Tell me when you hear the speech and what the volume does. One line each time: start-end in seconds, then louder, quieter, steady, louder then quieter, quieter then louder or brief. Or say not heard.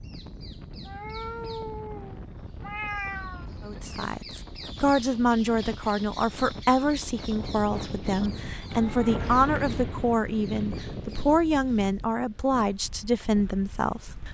3.6-14.2 steady.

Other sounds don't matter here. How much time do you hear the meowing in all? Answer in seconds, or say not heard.
3 s.